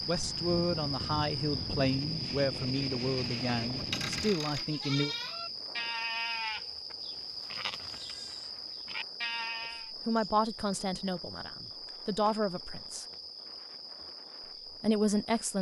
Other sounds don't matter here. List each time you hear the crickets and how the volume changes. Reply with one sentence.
You can hear the crickets from 0.0 to 15.5 s, getting quieter.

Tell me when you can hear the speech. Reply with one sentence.
You can hear the speech from 0.1 to 5.2 s, from 9.9 to 13.1 s and from 14.8 to 15.5 s.